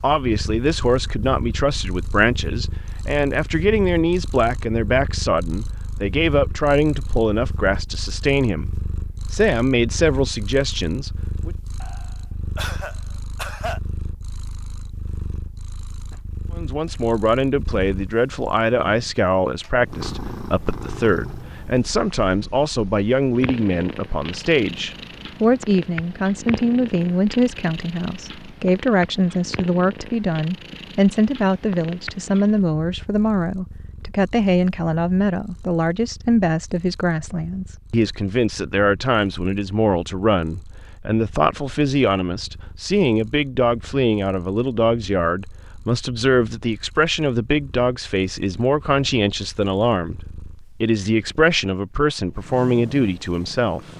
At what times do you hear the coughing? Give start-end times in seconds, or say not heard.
11.8-13.8.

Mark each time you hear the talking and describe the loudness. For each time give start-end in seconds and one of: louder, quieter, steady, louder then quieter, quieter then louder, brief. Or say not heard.
0.0-11.6 steady
16.6-53.9 steady.